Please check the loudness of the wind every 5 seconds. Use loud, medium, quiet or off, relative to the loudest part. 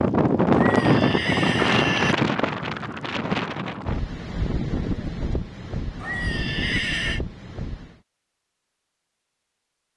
loud, medium.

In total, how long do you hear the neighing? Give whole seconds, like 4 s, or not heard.
3 s.